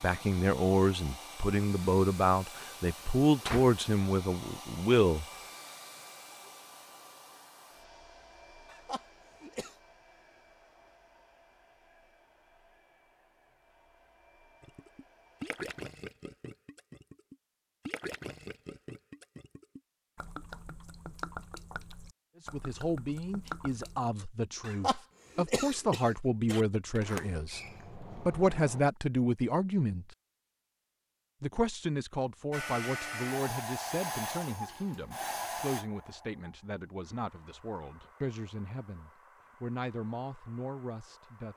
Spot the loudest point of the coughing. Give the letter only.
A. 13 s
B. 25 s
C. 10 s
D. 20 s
B.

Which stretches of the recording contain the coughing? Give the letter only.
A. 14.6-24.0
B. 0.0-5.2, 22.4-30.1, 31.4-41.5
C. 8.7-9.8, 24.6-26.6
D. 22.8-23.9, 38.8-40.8
C.